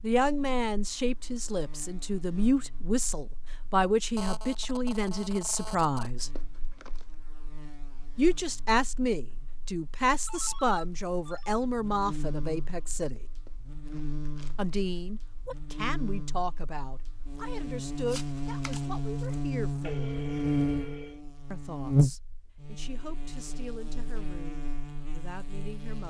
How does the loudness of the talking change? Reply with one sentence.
The volume of the talking goes down.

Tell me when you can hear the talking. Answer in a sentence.
The talking can be heard from 0.0 to 6.3 s, from 8.2 to 13.2 s, from 14.6 to 20.2 s and from 21.5 to 26.0 s.